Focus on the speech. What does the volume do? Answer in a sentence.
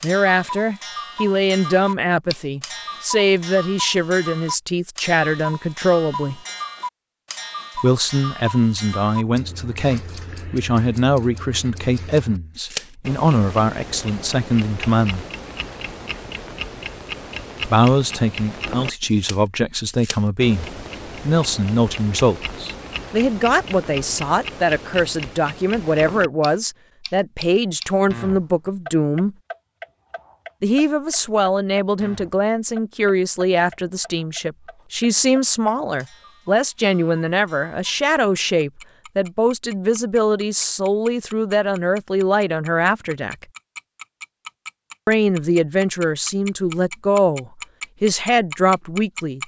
The loudness of the speech stays about the same.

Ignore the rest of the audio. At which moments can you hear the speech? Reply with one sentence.
You can hear the speech from 0.0 to 6.4 s, from 7.8 to 15.2 s, from 17.6 to 29.4 s, from 30.6 to 43.5 s and from 45.0 to 49.4 s.